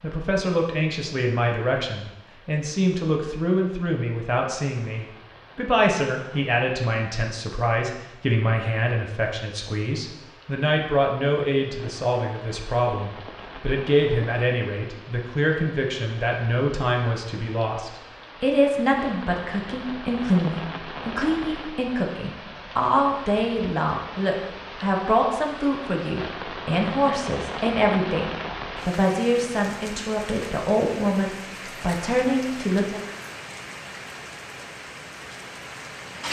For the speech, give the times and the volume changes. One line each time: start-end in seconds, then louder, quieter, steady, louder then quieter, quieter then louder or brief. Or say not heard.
0.0-33.0 steady.